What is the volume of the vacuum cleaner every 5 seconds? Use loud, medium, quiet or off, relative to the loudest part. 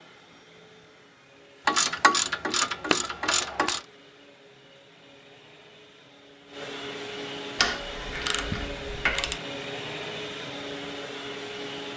quiet, loud, loud.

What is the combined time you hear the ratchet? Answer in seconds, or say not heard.
4 s.